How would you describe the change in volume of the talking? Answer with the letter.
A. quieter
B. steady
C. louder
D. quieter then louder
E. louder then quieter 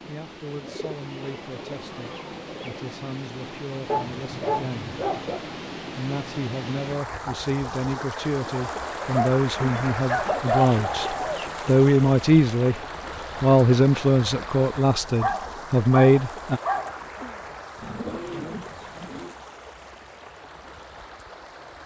C.